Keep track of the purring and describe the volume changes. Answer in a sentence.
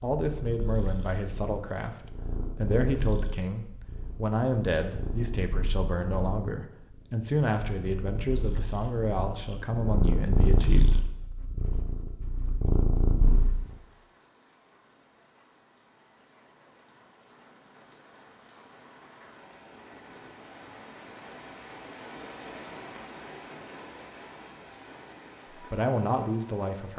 The loudness of the purring goes up.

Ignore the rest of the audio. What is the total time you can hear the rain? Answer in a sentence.
The rain can be heard for 14 seconds in total.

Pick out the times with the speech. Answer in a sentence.
You can hear the speech from 0.0 to 11.0 s and from 25.6 to 26.9 s.